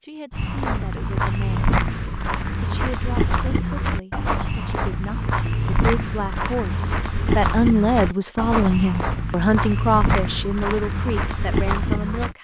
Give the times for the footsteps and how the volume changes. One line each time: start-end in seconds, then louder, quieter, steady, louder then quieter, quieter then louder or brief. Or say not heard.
0.3-12.3 steady.